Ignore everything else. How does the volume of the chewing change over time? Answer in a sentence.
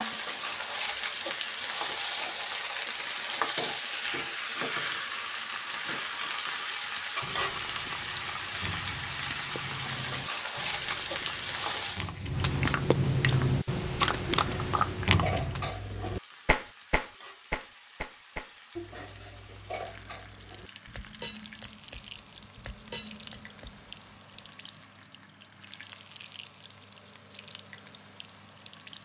The loudness of the chewing goes up.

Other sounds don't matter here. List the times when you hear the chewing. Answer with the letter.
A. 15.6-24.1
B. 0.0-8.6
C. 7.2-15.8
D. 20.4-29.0
C.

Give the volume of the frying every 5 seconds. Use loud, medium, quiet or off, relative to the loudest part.
loud, loud, loud, quiet, quiet, quiet.